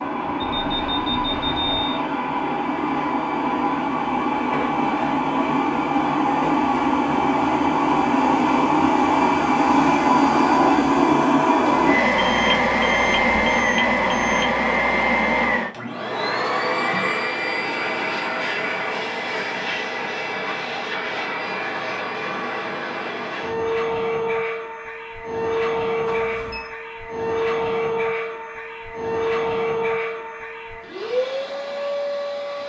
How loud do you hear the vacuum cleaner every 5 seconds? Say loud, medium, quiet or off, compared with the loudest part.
medium, loud, loud, medium, medium, medium, medium.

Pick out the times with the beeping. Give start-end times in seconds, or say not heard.
0.4-2.0, 12.2-14.6, 26.1-26.7.